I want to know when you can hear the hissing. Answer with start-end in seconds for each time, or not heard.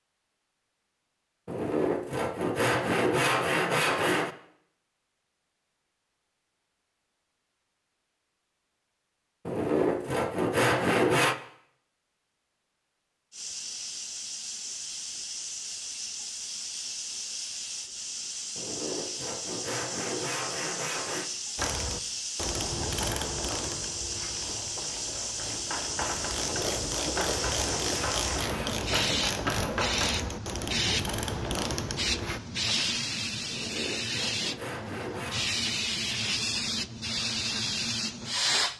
13.3-38.7.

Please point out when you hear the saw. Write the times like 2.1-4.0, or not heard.
1.4-4.3, 9.4-11.3, 18.6-21.3, 26.2-28.8, 33.5-35.5.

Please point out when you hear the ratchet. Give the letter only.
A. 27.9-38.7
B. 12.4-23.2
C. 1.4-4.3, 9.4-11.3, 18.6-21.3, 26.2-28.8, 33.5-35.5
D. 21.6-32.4
D.